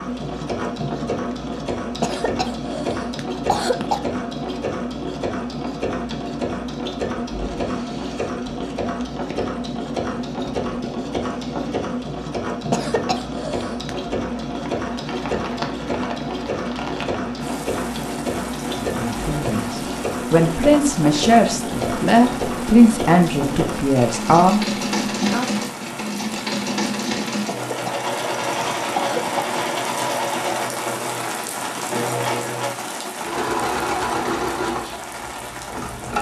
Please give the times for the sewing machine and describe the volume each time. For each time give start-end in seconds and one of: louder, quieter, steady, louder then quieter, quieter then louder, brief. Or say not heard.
0.0-36.1 steady.